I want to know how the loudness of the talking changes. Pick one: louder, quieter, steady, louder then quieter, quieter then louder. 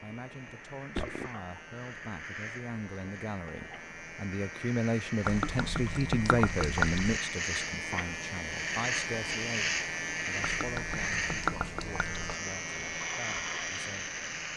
louder then quieter.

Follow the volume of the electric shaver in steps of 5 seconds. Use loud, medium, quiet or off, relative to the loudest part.
medium, loud, loud.